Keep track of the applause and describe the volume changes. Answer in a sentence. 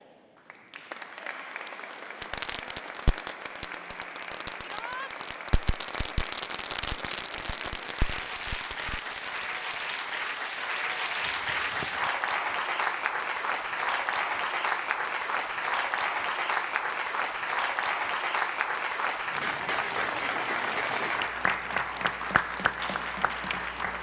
The volume of the applause goes up.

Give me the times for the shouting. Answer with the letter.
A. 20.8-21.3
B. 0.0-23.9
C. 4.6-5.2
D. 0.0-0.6
C.